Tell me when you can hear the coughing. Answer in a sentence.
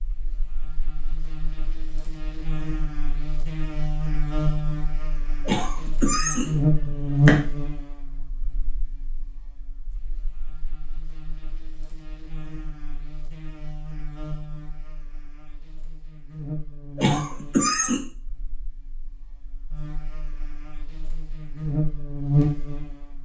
The coughing can be heard from 5.5 to 7.5 s and from 16.9 to 18.0 s.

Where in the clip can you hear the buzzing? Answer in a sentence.
The buzzing can be heard from 0.0 to 23.2 s.